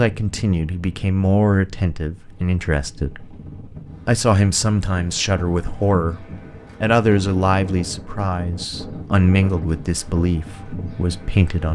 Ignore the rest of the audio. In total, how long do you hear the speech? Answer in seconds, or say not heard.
11 s.